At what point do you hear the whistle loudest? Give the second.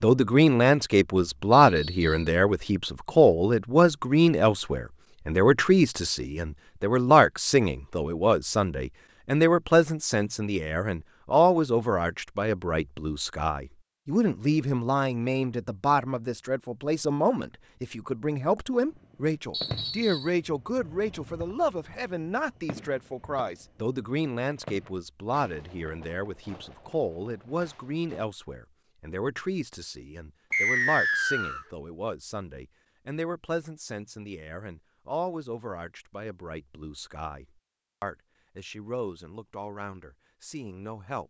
31 s.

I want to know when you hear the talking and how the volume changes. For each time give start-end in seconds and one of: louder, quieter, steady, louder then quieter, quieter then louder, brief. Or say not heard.
0.0-41.2 quieter.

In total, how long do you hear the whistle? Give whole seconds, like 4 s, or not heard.
3 s.